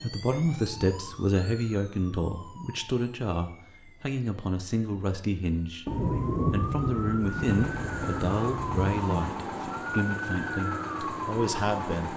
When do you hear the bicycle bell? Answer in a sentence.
You can't hear the bicycle bell here.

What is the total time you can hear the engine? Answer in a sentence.
The engine can be heard for 5 seconds in total.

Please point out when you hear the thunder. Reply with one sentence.
The thunder can be heard from 5.8 to 9.2 s.